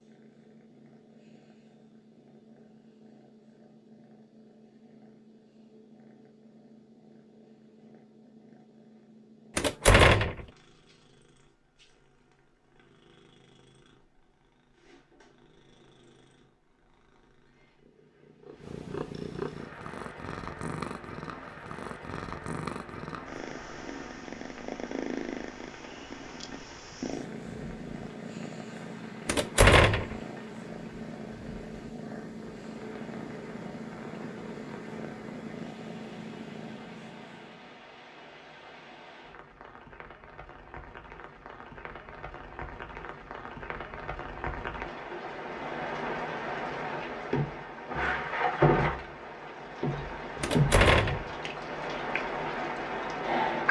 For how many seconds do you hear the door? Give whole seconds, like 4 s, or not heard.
3 s.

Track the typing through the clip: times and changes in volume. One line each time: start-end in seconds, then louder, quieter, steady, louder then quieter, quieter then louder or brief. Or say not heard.
not heard.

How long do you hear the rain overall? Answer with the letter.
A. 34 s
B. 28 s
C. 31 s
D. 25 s
A.